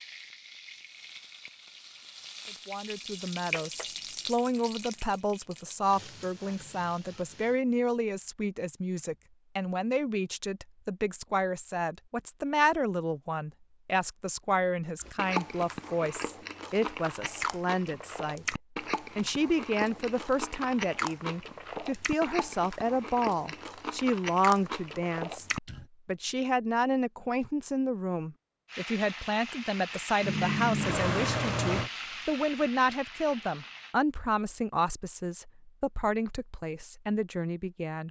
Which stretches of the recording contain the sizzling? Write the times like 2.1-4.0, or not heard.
0.0-7.6, 28.6-34.0.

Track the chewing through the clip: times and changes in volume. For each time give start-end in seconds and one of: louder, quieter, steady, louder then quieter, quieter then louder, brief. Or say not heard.
14.9-25.9 steady.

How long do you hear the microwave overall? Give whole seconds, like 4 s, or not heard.
2 s.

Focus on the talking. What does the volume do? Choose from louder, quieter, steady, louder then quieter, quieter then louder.
steady.